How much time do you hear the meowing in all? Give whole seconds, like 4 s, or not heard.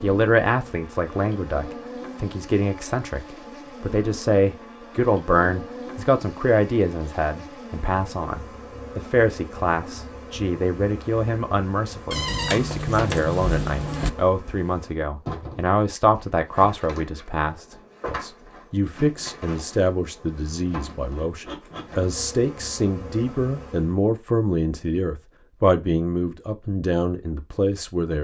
2 s.